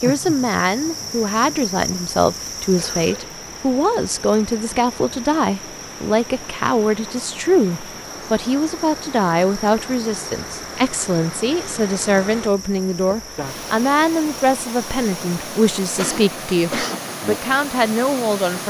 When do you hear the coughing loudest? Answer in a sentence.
The loudest moment of the coughing is at 17 seconds.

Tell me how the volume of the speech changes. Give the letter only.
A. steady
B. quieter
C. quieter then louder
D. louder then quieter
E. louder
A.